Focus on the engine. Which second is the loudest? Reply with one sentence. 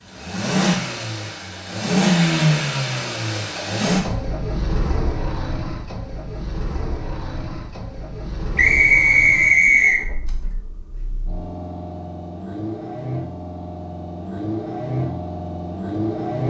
The volume of the engine peaks at 2 seconds.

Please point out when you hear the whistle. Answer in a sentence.
You can hear the whistle from 8.6 to 10.0 s.